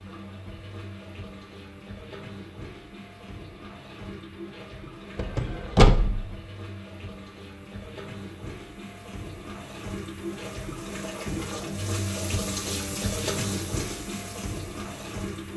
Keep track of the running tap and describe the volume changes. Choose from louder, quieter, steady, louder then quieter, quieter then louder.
louder.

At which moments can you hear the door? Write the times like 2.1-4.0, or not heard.
5.2-6.3.